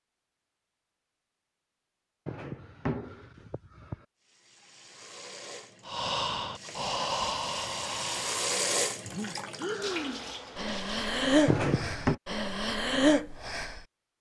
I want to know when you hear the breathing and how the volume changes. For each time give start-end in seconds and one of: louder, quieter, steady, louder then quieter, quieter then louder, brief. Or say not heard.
5.8-13.8 quieter then louder.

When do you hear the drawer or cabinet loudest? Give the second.
12 s.